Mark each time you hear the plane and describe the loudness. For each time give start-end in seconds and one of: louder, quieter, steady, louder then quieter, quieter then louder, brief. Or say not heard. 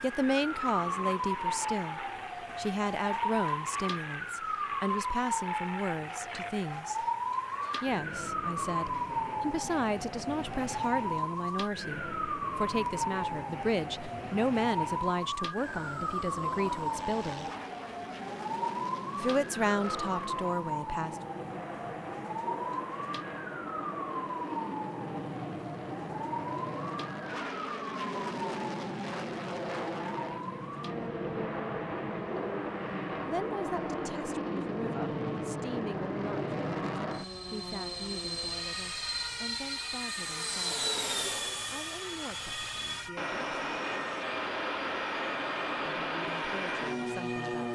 0.0-47.7 louder.